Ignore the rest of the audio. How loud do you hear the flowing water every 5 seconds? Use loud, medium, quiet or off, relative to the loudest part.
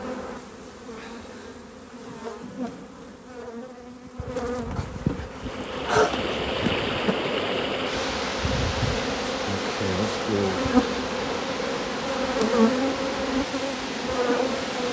off, loud, loud.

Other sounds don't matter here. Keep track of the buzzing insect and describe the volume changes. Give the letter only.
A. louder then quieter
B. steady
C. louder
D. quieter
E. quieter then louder
C.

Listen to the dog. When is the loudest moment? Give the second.
6 s.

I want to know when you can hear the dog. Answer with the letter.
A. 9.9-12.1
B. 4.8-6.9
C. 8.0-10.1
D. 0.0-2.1
B.